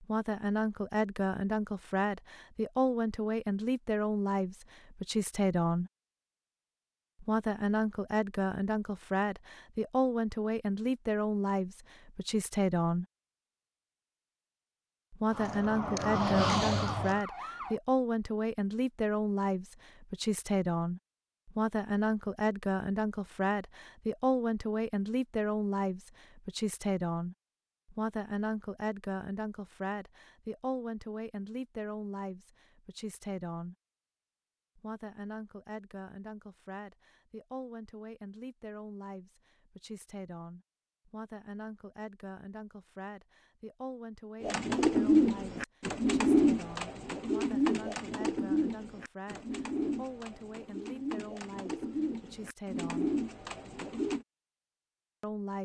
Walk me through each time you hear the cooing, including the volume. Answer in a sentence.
You can hear the cooing from 44.4 to 54.2 s, getting quieter.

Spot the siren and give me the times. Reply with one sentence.
The siren can be heard from 15.2 to 17.8 s.